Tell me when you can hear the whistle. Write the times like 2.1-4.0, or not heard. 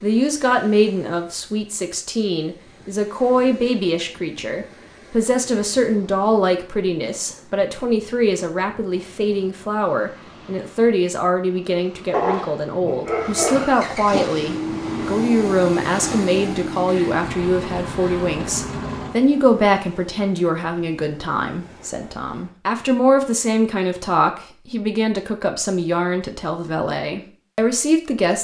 not heard.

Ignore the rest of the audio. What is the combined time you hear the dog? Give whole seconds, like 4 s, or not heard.
2 s.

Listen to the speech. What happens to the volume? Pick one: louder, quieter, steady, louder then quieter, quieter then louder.
steady.